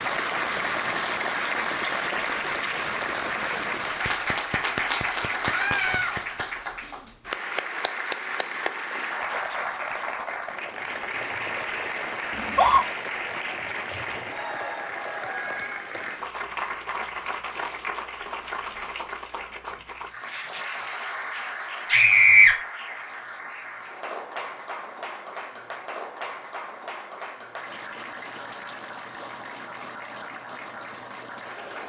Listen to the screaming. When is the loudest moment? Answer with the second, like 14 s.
22 s.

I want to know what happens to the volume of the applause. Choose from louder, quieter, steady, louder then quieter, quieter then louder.
quieter.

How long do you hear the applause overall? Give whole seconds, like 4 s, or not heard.
32 s.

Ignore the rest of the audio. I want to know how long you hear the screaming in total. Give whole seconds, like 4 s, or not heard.
2 s.